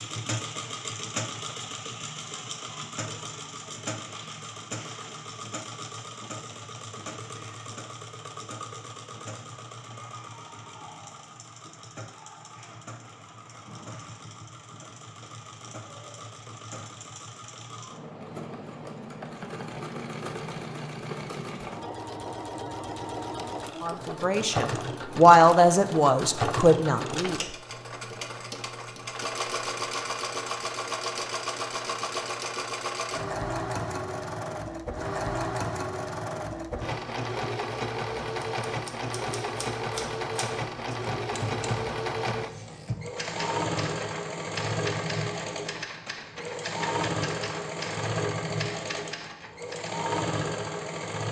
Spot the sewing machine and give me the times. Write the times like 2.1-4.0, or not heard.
0.0-51.2.